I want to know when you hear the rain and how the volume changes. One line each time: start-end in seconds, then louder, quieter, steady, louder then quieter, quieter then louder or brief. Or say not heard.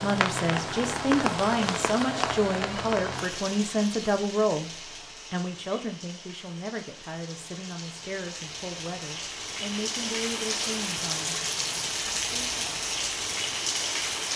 0.0-14.3 quieter then louder.